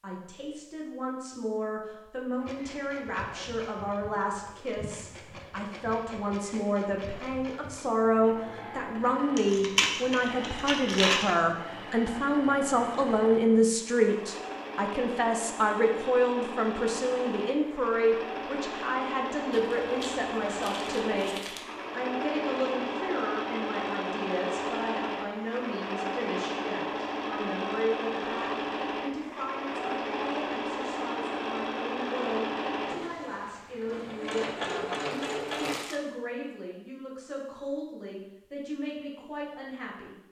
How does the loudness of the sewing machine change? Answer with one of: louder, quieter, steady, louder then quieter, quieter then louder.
louder.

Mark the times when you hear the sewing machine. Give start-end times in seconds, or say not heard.
2.4-35.8.